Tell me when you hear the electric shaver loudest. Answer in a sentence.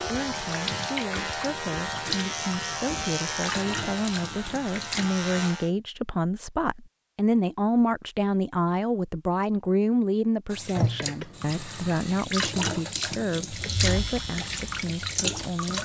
The loudest moment of the electric shaver is at 3 seconds.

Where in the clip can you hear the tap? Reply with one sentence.
The tap can be heard from 0.0 to 5.5 s and from 10.5 to 15.8 s.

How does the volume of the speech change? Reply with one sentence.
The loudness of the speech goes up, then down.